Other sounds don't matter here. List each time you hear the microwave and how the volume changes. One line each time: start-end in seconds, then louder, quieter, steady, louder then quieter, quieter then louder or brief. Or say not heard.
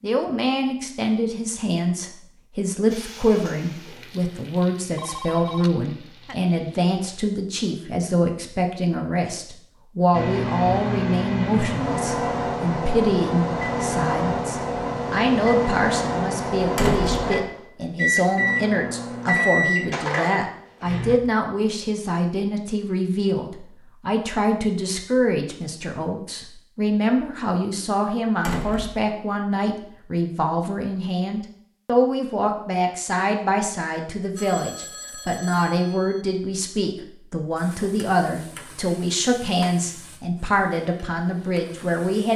10.1-21.2 steady.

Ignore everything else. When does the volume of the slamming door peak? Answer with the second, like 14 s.
17 s.